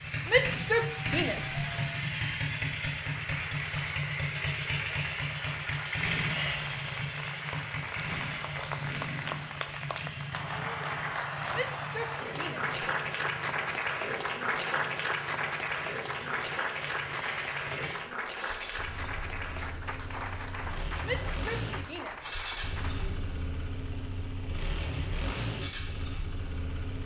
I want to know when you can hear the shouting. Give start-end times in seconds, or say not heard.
0.2-1.6, 11.5-12.7, 21.0-23.2.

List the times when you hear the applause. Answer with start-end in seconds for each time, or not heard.
0.0-23.1.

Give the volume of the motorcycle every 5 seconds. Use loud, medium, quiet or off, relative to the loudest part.
loud, loud, medium, medium, medium, medium.